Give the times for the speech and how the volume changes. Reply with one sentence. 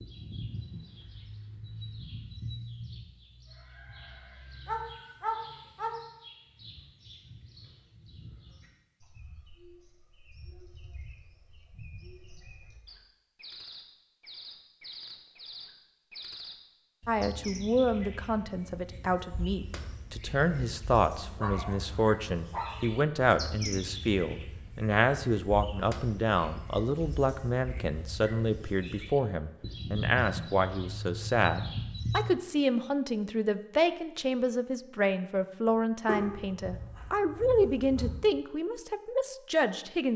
The speech can be heard from 17.1 to 40.1 s, at a steady volume.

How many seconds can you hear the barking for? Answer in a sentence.
The barking can be heard for 5 seconds in total.